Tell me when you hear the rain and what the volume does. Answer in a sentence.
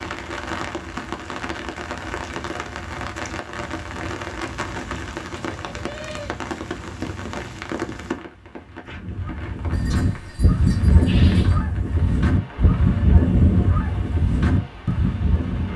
The rain can be heard from 0.0 to 15.7 s, getting quieter.